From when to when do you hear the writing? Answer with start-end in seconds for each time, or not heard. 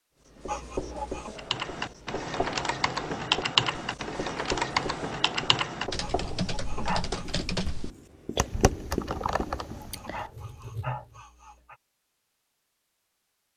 0.2-11.2.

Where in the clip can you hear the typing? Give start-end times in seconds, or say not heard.
1.4-10.2.